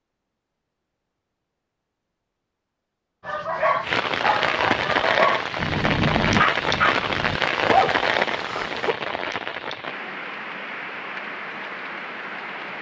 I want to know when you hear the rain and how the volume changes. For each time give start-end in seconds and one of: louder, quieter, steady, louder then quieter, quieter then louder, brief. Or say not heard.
3.8-12.7 quieter.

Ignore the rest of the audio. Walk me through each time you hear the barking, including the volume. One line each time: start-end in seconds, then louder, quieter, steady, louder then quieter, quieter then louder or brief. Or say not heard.
3.2-8.9 steady.